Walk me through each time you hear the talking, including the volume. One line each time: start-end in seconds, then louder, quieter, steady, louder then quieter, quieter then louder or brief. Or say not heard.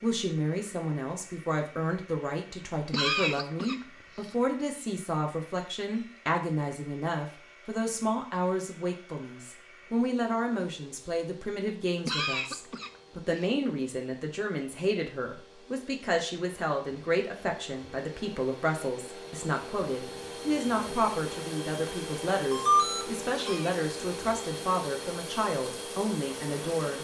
0.0-26.9 steady.